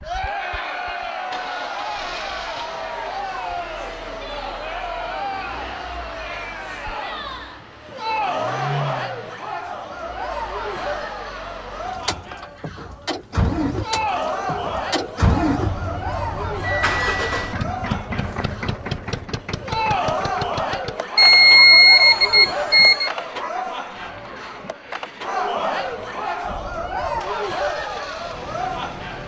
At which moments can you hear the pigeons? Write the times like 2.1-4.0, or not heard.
not heard.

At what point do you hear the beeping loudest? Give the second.
22 s.